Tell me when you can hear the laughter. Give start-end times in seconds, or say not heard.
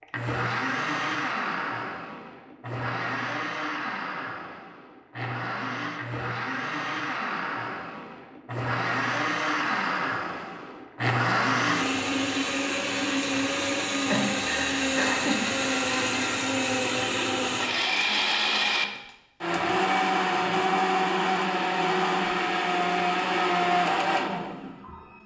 14.1-15.4.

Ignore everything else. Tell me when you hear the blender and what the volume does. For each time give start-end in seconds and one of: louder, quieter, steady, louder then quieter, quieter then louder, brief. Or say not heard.
0.0-25.2 louder.